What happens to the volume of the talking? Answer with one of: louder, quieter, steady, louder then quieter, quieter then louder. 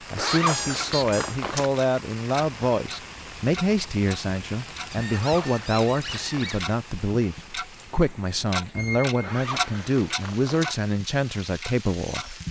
steady.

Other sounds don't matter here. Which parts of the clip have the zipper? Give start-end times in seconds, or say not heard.
0.1-1.7, 5.0-6.6, 9.2-10.8.